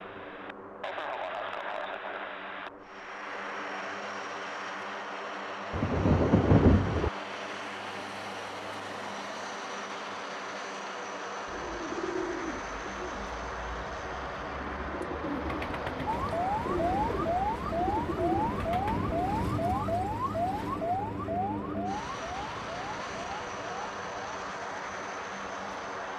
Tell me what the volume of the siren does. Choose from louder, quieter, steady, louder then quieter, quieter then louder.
quieter.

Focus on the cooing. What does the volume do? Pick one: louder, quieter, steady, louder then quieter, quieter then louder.
quieter then louder.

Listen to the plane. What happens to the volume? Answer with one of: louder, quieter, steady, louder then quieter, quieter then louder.
steady.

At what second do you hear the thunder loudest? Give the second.
7 s.